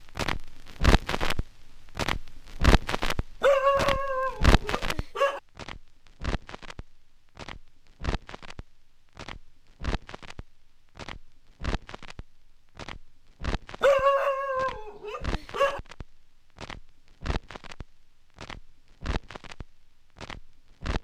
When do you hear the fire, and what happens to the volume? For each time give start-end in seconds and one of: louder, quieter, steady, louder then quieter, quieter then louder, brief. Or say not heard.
0.0-20.9 quieter.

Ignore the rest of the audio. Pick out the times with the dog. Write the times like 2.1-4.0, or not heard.
3.4-5.4, 13.8-15.8.